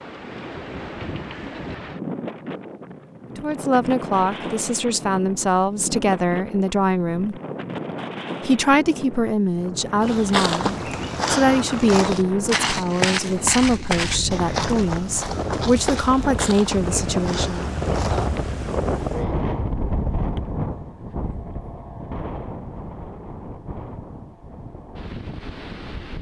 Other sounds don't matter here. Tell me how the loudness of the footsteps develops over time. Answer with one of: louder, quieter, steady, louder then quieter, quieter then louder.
quieter.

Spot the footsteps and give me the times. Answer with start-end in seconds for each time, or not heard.
10.0-18.6.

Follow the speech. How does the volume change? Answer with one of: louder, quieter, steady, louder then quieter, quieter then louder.
steady.